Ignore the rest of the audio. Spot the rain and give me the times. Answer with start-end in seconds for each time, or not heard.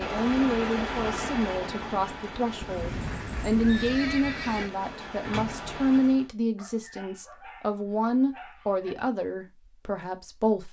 0.0-6.3.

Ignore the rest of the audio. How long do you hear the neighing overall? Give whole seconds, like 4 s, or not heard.
2 s.